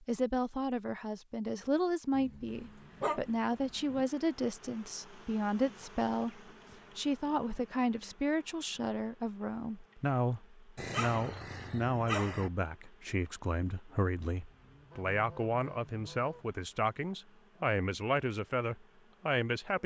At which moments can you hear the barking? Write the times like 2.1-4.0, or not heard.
2.1-4.0, 10.8-12.5.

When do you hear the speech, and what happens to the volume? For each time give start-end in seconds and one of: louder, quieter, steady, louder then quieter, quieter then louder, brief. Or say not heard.
0.0-19.8 steady.